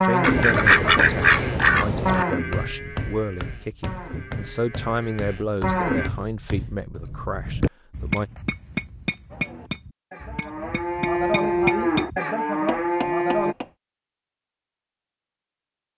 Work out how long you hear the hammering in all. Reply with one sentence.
The hammering can be heard for 11 seconds in total.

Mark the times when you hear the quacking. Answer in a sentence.
You can hear the quacking from 0.2 to 2.2 s.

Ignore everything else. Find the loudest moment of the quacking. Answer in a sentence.
The loudest moment of the quacking is at 1 second.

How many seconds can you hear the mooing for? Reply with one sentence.
You can hear the mooing for 10 seconds altogether.